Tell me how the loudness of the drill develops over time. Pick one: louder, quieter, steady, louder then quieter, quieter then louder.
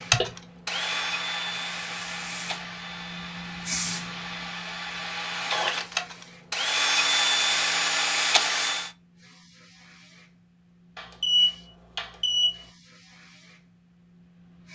quieter then louder.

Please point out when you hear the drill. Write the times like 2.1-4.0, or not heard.
0.1-8.9.